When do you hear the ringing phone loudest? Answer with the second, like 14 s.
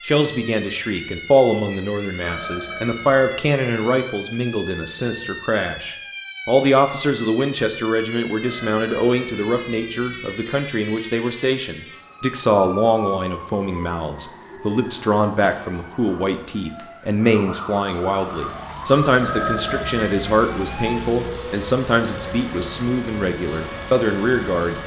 20 s.